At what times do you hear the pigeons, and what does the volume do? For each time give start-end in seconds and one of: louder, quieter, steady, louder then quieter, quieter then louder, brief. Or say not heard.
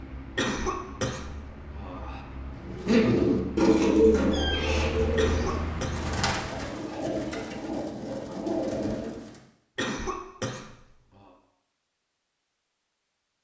2.5-9.4 quieter.